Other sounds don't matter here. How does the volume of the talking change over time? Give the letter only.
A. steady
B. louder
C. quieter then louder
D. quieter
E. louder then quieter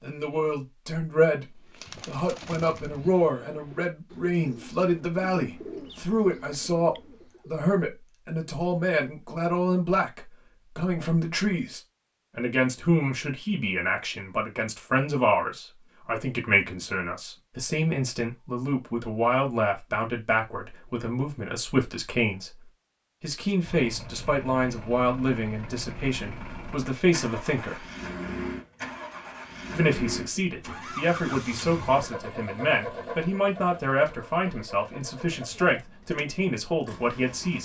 A.